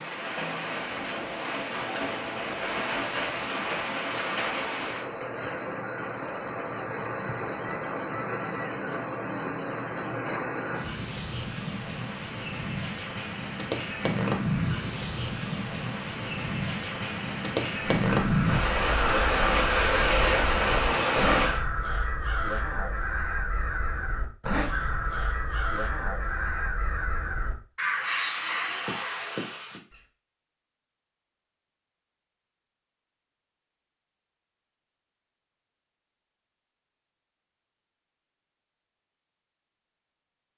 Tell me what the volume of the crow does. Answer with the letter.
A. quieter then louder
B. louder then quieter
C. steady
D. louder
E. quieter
C.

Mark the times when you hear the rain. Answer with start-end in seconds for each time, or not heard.
0.0-21.6.